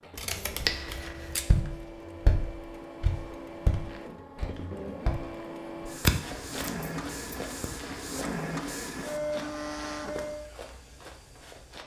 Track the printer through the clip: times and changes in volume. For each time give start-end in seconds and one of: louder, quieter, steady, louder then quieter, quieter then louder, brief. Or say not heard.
0.0-10.5 louder.